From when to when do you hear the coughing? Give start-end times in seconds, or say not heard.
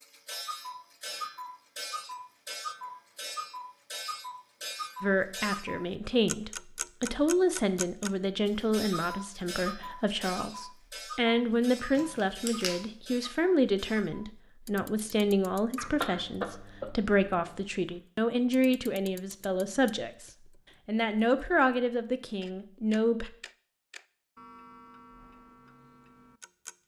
15.8-17.6.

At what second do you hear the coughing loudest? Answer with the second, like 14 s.
16 s.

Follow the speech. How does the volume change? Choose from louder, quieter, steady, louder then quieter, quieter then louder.
steady.